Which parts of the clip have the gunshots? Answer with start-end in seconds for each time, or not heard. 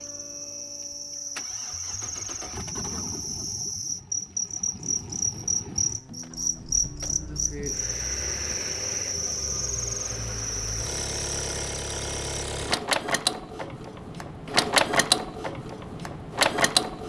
not heard.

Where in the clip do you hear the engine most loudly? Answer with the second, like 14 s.
15 s.